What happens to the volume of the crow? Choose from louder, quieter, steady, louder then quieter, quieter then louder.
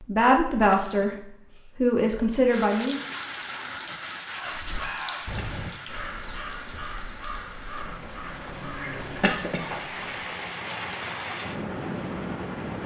quieter.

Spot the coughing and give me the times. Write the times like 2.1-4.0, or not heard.
0.6-1.7, 5.2-5.8, 9.1-10.2.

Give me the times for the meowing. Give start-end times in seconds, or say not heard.
not heard.